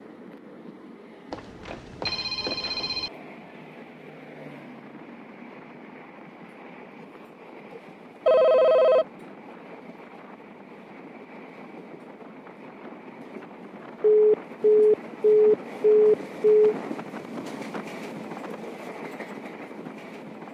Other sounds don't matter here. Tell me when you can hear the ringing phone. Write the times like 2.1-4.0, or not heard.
1.3-3.1, 8.2-9.1, 14.0-16.8.